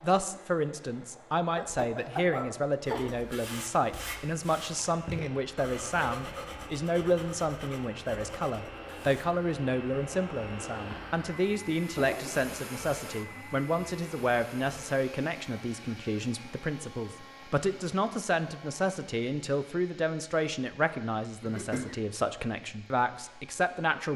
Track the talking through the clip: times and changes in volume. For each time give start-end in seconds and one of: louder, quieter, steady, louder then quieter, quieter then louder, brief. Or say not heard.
0.0-24.1 steady.